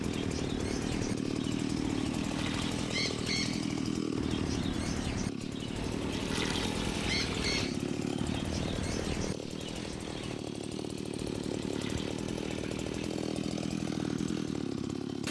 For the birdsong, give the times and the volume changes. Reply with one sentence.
The birdsong can be heard from 0.0 to 10.4 s, at a steady volume.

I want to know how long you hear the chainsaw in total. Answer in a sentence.
The chainsaw can be heard for 15 seconds in total.